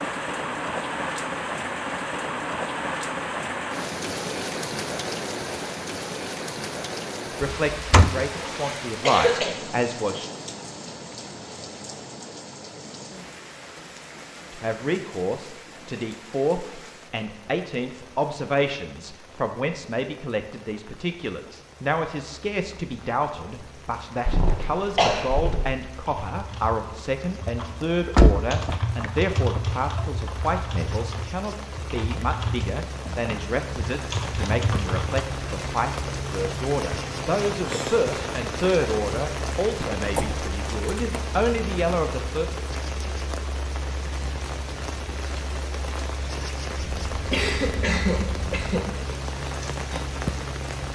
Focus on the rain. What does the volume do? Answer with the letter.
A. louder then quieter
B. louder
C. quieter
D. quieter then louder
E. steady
D.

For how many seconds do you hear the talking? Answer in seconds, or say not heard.
31 s.